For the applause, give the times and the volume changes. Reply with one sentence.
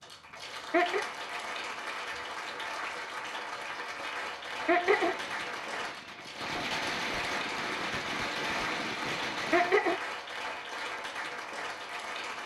You can hear the applause from 0.0 to 12.4 s, at a steady volume.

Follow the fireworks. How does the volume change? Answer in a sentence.
The loudness of the fireworks goes up.